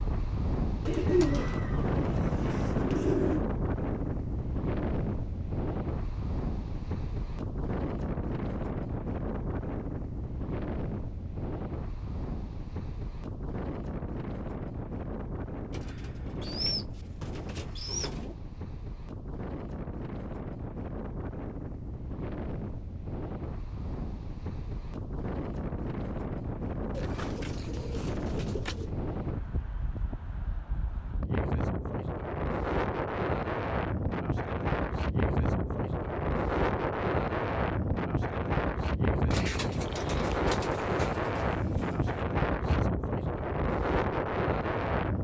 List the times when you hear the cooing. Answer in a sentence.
You can hear the cooing from 0.8 to 3.5 s, from 15.7 to 18.4 s, from 26.9 to 28.9 s and from 39.3 to 42.2 s.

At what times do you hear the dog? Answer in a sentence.
You can't hear the dog here.